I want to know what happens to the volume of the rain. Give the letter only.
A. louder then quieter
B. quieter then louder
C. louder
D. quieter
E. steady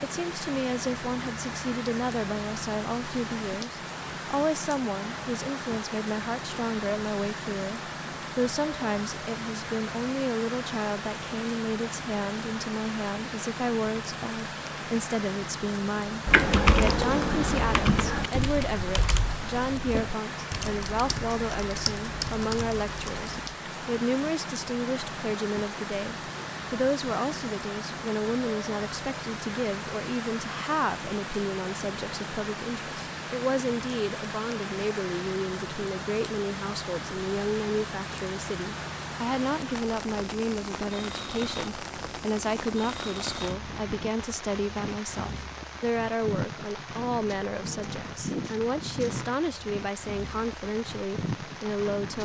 E.